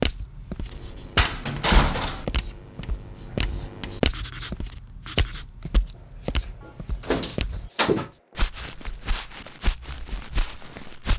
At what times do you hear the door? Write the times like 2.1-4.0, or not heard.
1.1-2.2, 6.7-8.0.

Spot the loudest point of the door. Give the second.
2 s.